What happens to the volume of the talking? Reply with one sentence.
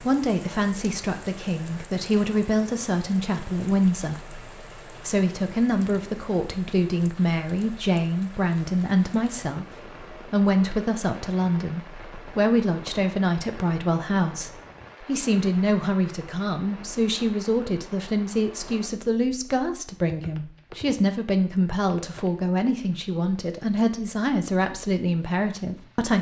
The loudness of the talking stays about the same.